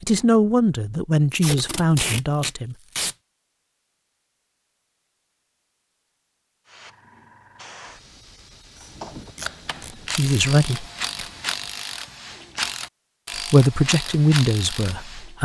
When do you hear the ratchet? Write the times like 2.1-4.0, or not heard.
8.8-15.4.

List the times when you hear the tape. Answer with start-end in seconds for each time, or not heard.
1.3-3.1, 9.3-10.4.